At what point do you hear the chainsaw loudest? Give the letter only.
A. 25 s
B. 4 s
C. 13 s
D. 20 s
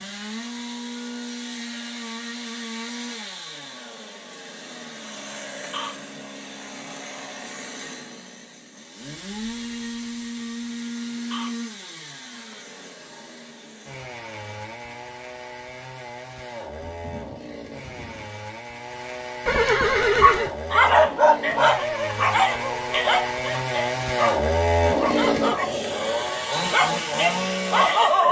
A.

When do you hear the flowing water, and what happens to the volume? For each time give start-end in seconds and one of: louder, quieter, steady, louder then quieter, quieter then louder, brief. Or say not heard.
not heard.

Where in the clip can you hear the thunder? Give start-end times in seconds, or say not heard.
16.8-18.3.